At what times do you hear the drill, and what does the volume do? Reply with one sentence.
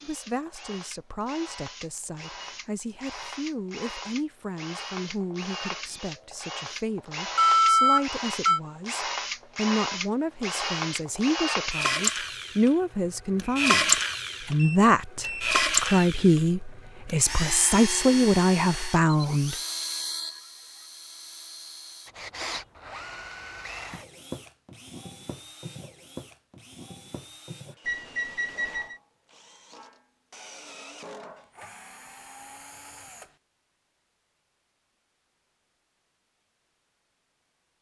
The drill can be heard from 0.0 to 33.4 s, getting louder then quieter.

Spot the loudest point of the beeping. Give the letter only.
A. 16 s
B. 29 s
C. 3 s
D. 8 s
D.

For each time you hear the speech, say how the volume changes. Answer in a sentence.
The speech can be heard from 0.0 to 19.6 s, getting louder.